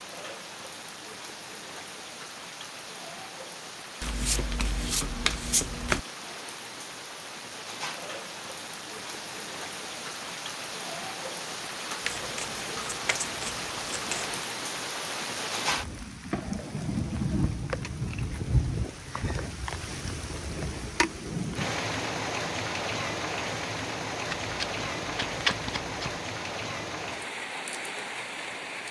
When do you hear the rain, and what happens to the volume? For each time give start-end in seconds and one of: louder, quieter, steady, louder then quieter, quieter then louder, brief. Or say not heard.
0.0-28.8 louder.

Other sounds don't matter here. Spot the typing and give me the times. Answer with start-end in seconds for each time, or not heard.
not heard.